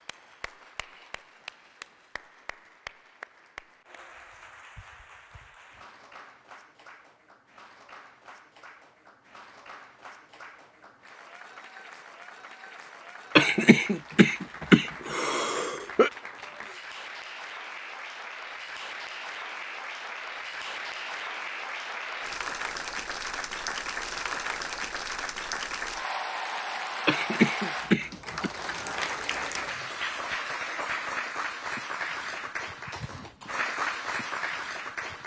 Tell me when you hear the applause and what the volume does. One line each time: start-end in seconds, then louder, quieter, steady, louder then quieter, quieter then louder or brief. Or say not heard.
0.0-35.2 louder.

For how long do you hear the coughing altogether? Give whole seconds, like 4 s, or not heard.
4 s.